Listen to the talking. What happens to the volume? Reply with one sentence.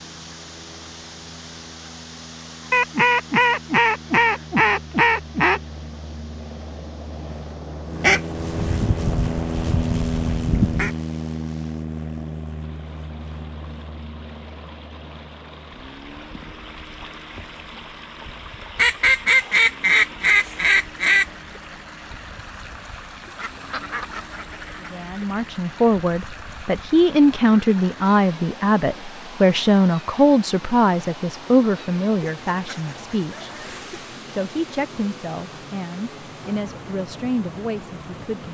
The loudness of the talking goes down.